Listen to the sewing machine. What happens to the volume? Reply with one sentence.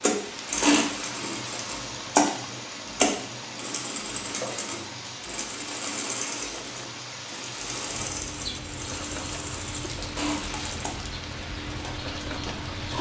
The loudness of the sewing machine goes down.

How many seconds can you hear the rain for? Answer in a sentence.
You can hear the rain for 13 seconds altogether.